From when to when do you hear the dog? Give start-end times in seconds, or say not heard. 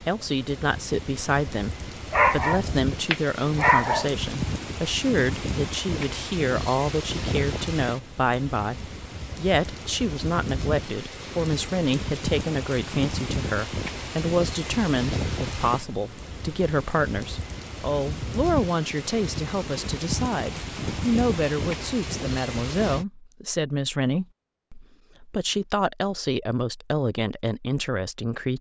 2.1-4.1.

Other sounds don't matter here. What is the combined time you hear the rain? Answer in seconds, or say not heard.
23 s.